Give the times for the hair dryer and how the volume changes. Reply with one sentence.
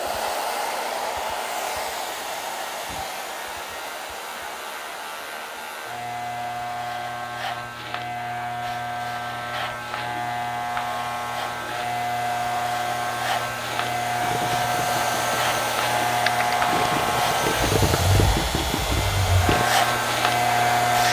You can hear the hair dryer from 0.0 to 21.0 s, getting quieter then louder.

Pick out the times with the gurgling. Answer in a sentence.
You can hear the gurgling from 14.2 to 19.6 s.